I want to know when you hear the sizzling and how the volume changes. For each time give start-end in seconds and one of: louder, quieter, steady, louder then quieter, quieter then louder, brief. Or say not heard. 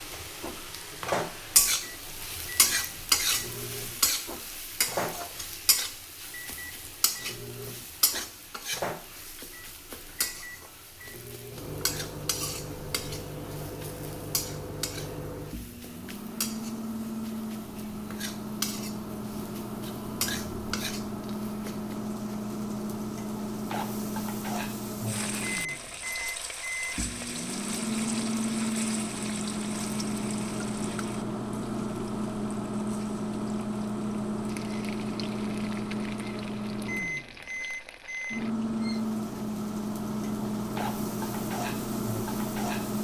0.0-42.9 quieter.